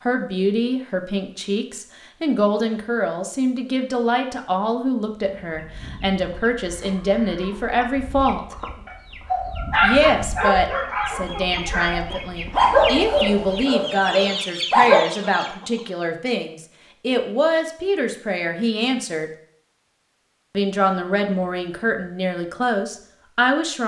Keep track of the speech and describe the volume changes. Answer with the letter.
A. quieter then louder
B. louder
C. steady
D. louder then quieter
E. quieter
C.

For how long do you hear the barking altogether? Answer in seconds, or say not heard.
6 s.